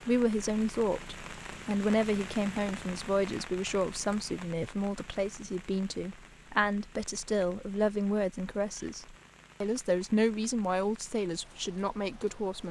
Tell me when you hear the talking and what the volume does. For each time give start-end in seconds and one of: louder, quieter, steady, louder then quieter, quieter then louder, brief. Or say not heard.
0.1-12.6 steady.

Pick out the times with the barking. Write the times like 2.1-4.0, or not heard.
not heard.